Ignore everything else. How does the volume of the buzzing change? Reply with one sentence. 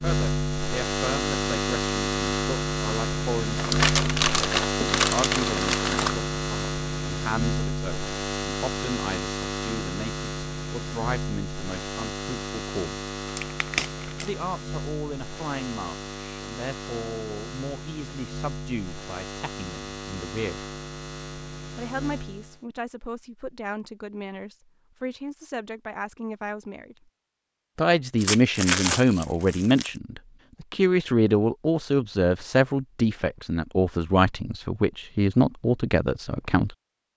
The loudness of the buzzing goes down.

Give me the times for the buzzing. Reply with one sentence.
You can hear the buzzing from 0.0 to 22.6 s.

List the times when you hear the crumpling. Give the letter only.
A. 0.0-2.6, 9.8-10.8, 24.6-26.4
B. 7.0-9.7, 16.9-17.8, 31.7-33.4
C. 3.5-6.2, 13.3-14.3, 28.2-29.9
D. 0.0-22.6
C.